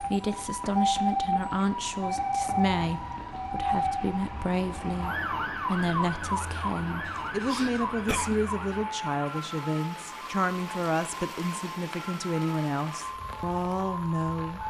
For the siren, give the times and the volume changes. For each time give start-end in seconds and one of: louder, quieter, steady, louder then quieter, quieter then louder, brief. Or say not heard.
0.0-14.6 quieter.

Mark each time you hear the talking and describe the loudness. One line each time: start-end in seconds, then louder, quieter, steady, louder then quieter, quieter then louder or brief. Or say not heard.
0.0-14.6 steady.